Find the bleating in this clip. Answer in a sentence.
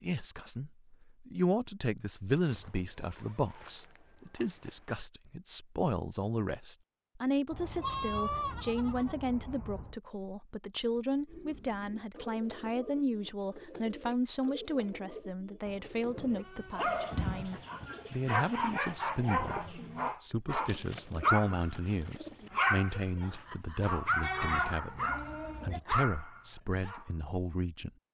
The bleating can be heard from 2.5 to 4.9 s, from 7.5 to 9.9 s, from 15.7 to 17.6 s and from 24.2 to 25.8 s.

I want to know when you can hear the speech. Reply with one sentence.
The speech can be heard from 0.0 to 27.9 s.